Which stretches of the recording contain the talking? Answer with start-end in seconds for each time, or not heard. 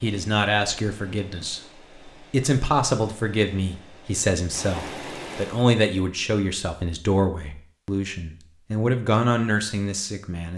0.0-10.5.